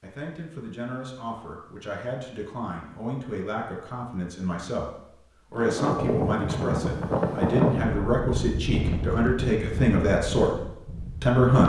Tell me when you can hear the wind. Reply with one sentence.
You can hear the wind from 5.5 to 11.4 s.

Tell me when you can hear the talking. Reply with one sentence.
You can hear the talking from 0.0 to 4.9 s, from 5.5 to 10.6 s and from 11.2 to 11.6 s.